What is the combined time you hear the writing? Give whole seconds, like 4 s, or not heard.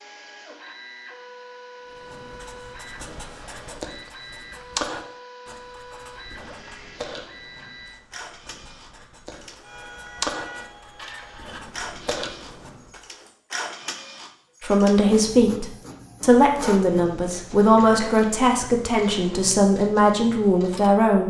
11 s.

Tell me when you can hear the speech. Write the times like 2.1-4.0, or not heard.
14.6-21.2.